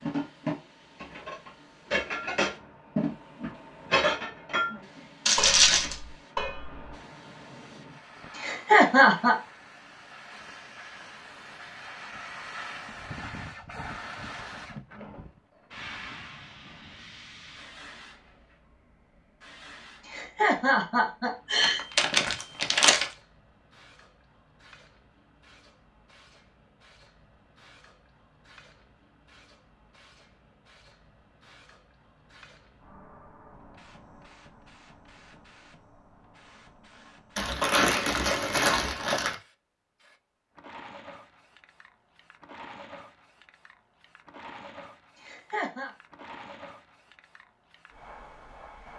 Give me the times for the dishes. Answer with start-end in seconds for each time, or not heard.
0.0-6.9.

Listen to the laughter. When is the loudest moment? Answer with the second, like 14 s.
9 s.